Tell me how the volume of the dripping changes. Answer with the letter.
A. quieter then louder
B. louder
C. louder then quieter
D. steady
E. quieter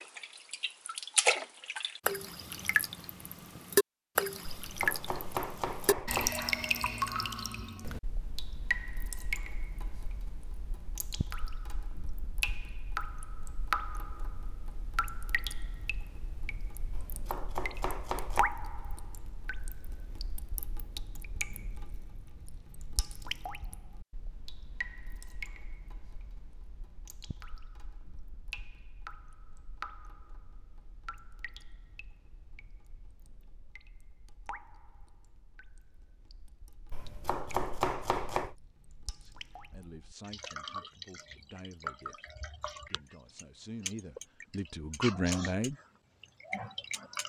A.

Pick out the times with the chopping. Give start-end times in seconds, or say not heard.
4.5-6.3, 16.9-18.4, 36.9-38.5.